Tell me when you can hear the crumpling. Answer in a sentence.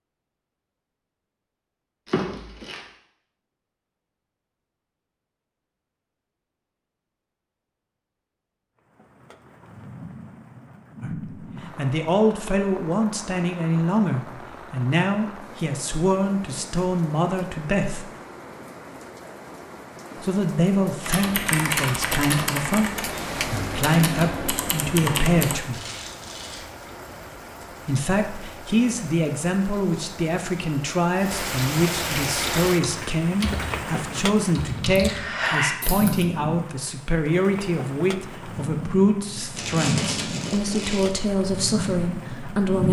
The crumpling can be heard from 2.0 to 2.8 s, from 25.7 to 26.6 s and from 39.5 to 41.1 s.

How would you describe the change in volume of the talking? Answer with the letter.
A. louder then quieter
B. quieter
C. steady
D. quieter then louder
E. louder
C.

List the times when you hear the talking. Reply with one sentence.
You can hear the talking from 11.0 to 18.1 s, from 20.2 to 25.8 s and from 27.9 to 42.8 s.